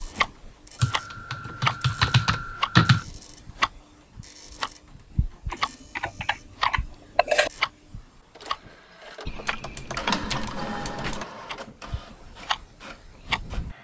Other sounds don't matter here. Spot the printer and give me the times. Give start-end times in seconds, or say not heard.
0.0-13.7.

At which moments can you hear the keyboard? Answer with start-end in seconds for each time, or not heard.
0.8-3.0, 5.5-7.5, 9.2-11.2.